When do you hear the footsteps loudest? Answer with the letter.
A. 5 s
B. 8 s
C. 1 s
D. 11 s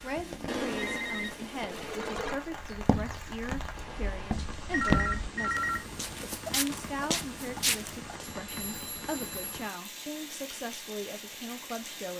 A.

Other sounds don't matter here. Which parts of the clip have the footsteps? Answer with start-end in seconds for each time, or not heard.
2.6-8.2.